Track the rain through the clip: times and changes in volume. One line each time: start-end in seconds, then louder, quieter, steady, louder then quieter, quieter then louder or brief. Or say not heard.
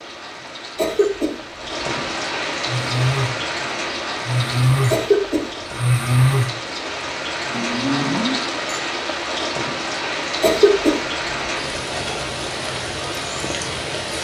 0.0-14.1 steady.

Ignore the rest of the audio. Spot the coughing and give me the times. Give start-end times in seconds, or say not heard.
0.8-1.4, 4.9-5.5, 10.4-11.0.